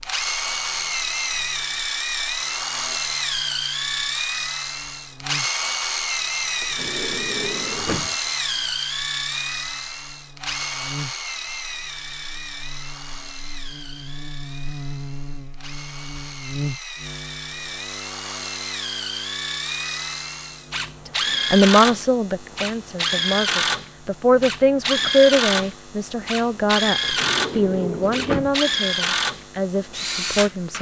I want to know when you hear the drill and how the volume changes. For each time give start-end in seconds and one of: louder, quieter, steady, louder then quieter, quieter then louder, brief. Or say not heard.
0.0-30.7 quieter then louder.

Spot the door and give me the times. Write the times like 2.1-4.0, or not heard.
6.6-8.2, 27.0-28.6.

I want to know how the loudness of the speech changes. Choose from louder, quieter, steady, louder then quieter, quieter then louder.
louder then quieter.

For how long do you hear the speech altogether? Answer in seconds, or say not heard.
9 s.